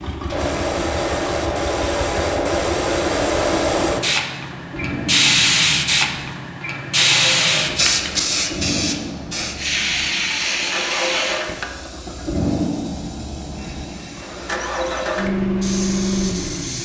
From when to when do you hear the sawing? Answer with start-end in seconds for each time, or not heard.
not heard.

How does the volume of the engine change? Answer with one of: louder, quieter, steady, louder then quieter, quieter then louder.
louder.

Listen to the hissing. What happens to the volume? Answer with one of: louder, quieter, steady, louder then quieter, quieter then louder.
quieter.